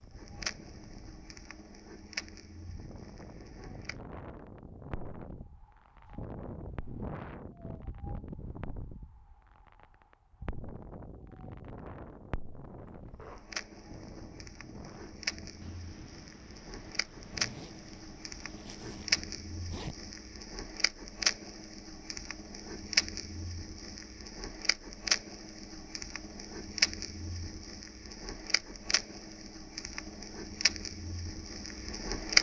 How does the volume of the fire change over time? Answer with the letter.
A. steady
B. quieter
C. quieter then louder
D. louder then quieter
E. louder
E.